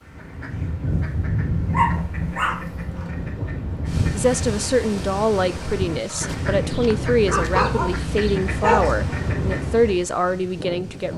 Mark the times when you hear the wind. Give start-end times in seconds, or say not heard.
0.1-11.1.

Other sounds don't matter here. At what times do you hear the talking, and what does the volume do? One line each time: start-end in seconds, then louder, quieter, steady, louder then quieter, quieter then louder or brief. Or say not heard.
4.2-11.1 steady.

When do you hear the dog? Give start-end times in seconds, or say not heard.
1.6-3.3, 6.1-8.9.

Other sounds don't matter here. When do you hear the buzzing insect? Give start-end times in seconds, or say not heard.
not heard.